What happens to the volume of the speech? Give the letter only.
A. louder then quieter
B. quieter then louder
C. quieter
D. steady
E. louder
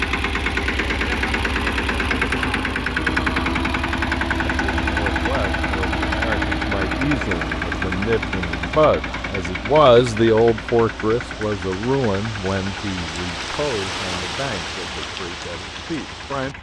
A.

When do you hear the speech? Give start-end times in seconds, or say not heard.
4.5-16.5.